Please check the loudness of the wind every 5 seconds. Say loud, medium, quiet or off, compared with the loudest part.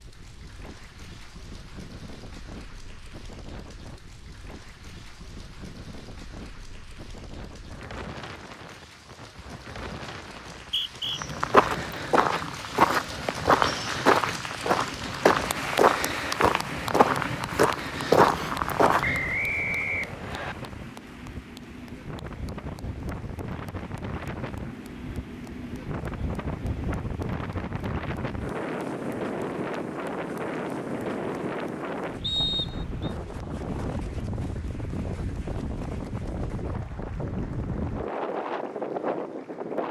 quiet, medium, medium, medium, medium, loud, loud, loud.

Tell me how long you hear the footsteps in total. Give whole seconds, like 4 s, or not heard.
8 s.